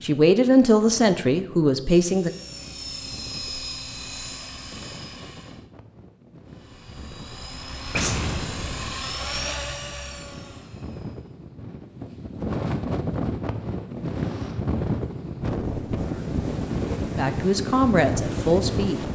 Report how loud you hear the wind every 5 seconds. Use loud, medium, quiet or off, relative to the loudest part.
quiet, quiet, loud, loud.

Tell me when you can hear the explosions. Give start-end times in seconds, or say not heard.
7.9-9.1.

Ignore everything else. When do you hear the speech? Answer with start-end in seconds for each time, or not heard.
0.0-2.3, 17.1-19.0.